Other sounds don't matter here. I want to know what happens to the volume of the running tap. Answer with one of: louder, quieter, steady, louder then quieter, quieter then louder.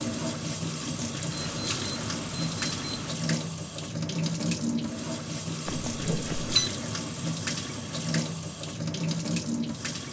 steady.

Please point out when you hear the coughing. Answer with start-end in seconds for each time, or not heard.
not heard.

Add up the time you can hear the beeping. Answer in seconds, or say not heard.
3 s.